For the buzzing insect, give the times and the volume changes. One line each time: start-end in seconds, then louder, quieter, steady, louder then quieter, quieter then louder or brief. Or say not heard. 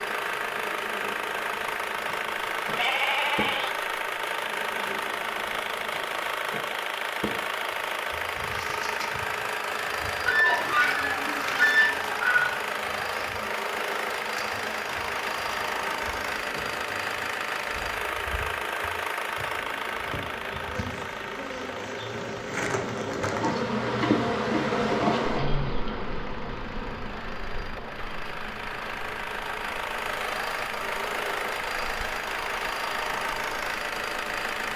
0.0-34.7 louder then quieter.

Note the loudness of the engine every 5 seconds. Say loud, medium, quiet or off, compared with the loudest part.
loud, loud, loud, loud, medium, medium, loud.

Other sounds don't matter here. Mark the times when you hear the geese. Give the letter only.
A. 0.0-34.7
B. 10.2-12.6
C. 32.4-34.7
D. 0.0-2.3
B.